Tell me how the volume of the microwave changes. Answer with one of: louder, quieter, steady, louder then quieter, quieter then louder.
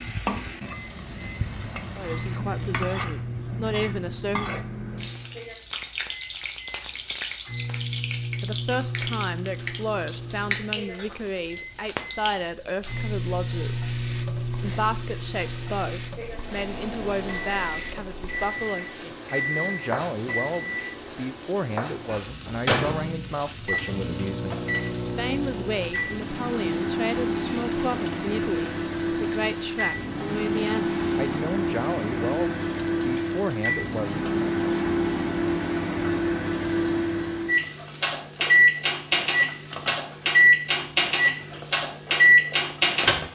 louder.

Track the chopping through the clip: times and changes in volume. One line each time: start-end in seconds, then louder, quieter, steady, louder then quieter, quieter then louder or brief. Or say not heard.
not heard.